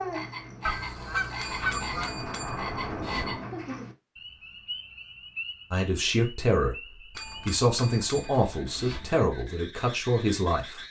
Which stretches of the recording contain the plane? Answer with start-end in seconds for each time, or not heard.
0.2-3.7.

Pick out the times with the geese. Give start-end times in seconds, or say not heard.
0.6-2.1.